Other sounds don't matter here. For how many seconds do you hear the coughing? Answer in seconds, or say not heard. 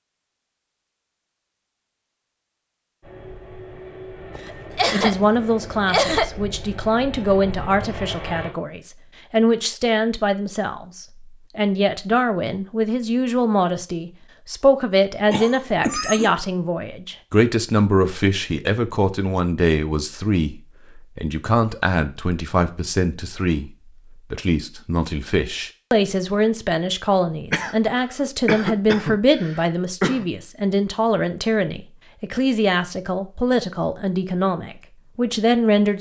5 s.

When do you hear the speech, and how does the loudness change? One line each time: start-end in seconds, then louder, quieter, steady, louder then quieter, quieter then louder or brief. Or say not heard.
4.9-23.7 steady
24.3-35.9 steady.